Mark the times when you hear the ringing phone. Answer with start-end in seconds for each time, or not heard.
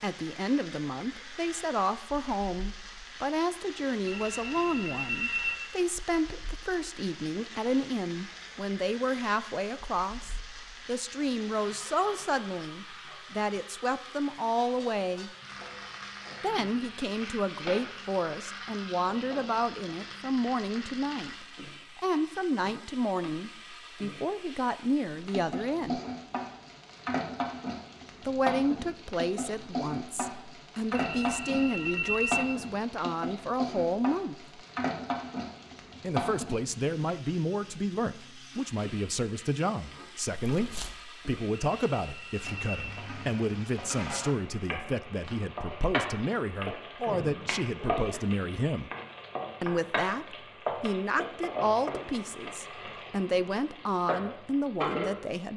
4.0-5.5, 30.9-32.5, 41.5-43.0.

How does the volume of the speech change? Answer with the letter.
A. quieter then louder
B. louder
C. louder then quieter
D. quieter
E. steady
E.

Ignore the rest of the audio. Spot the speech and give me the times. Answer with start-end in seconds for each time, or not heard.
0.0-15.3, 16.4-26.0, 28.2-34.6, 36.0-48.9, 49.6-55.5.